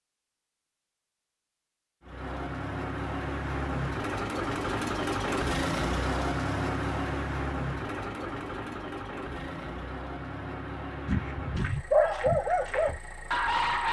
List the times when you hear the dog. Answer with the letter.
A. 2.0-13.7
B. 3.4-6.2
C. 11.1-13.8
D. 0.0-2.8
C.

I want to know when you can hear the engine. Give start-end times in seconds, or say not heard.
2.0-13.7.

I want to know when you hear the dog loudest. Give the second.
12 s.